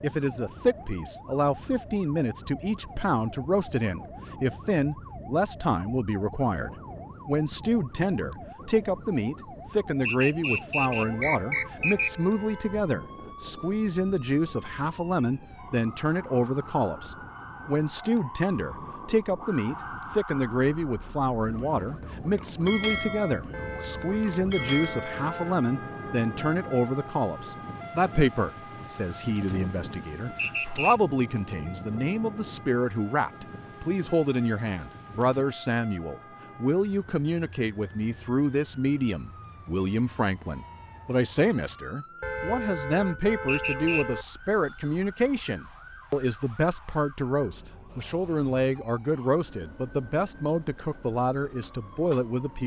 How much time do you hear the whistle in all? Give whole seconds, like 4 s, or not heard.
3 s.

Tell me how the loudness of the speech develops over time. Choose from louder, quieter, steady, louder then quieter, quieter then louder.
steady.